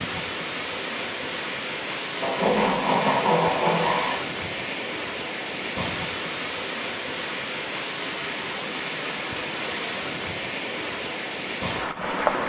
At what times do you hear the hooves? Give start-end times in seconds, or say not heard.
not heard.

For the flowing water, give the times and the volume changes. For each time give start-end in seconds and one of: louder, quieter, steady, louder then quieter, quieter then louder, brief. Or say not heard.
0.0-12.4 steady.